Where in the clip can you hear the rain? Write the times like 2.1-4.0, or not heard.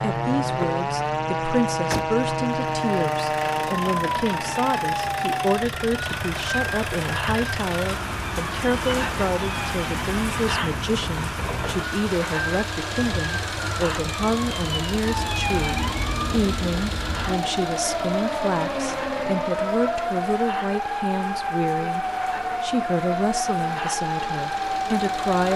6.0-25.5.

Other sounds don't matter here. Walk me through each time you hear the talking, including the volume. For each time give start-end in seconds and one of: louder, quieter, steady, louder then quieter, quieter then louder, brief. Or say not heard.
0.0-25.5 steady.